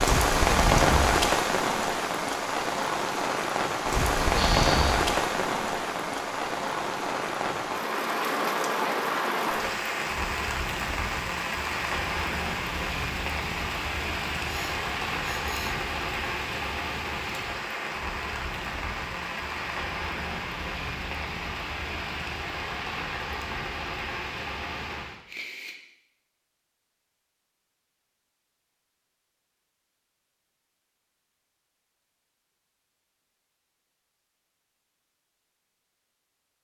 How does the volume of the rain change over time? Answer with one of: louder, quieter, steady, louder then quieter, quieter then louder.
quieter.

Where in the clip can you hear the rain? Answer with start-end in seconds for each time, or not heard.
0.0-25.2.